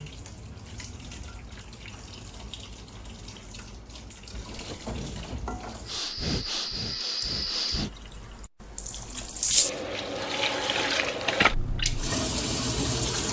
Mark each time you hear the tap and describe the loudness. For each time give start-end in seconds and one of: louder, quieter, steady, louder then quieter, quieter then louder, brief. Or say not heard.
0.0-13.2 louder.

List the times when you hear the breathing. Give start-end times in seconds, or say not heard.
4.5-7.9.